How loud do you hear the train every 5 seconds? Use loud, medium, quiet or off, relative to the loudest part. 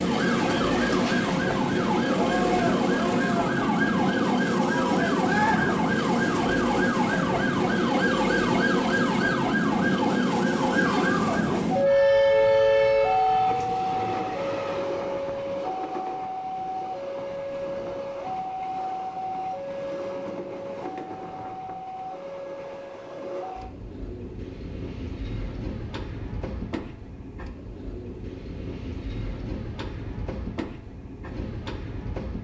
loud, loud, loud, medium, quiet, quiet, quiet.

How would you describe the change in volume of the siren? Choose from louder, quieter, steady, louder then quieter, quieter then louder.
steady.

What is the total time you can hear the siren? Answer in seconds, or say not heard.
14 s.